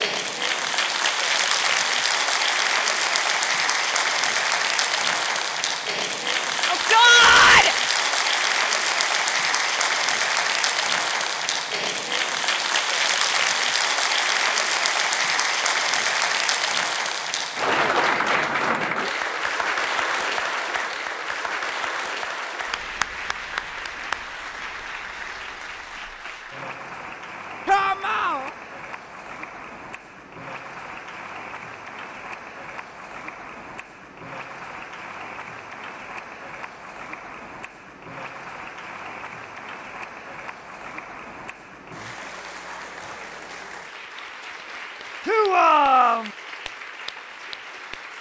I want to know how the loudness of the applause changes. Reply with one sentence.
The volume of the applause goes down.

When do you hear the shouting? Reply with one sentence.
You can hear the shouting from 6.7 to 7.8 s, from 27.6 to 28.5 s and from 45.2 to 46.3 s.